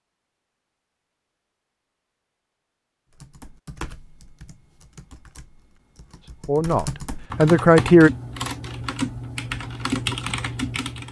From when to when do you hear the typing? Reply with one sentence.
You can hear the typing from 3.1 to 11.0 s.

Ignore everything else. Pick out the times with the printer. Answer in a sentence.
You can't hear the printer here.